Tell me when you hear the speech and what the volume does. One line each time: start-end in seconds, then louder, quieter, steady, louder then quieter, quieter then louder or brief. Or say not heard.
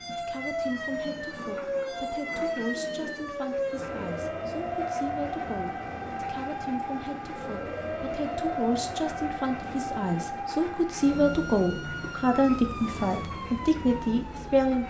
0.1-14.8 louder.